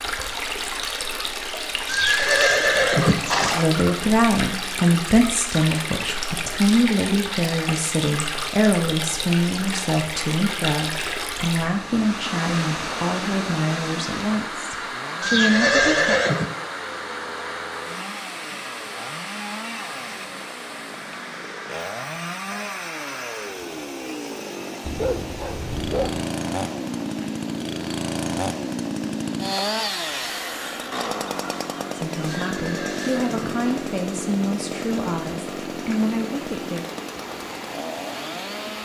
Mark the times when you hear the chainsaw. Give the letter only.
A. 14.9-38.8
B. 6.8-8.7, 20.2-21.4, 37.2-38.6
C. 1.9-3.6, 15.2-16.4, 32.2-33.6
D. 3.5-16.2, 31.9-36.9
A.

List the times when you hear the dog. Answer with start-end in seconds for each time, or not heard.
24.8-26.3.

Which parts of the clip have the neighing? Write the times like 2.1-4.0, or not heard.
1.9-3.6, 15.2-16.4, 32.2-33.6.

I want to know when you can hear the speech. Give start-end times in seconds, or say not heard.
3.5-16.2, 31.9-36.9.